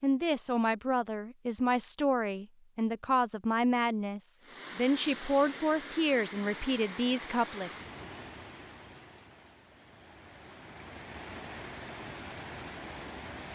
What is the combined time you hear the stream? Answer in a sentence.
You can hear the stream for 9 seconds altogether.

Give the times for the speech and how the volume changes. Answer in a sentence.
You can hear the speech from 0.0 to 7.7 s, at a steady volume.